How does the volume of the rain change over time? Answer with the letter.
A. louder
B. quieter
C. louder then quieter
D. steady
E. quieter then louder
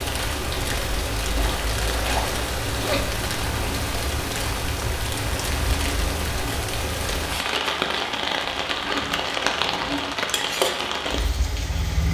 D.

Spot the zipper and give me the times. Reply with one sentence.
The zipper can be heard from 1.4 to 3.1 s and from 8.8 to 10.1 s.